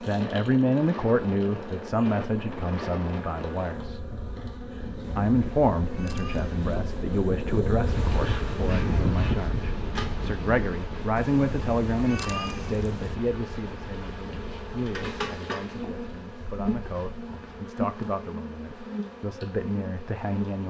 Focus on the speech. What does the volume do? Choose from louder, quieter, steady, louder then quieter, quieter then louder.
quieter.